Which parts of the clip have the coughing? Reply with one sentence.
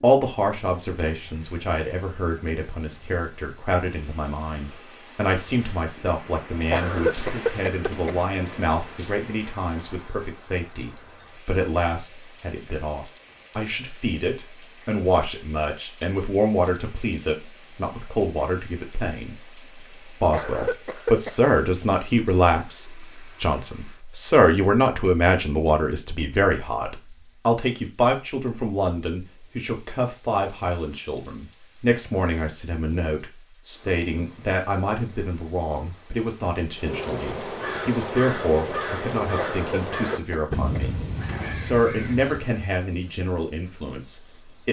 You can hear the coughing from 6.7 to 8.2 s, from 20.3 to 21.4 s and from 39.4 to 40.9 s.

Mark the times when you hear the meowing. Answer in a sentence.
You can't hear the meowing here.